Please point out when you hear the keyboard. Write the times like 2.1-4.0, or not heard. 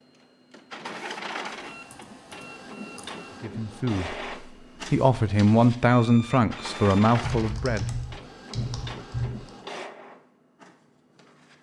1.6-3.2, 7.2-9.5.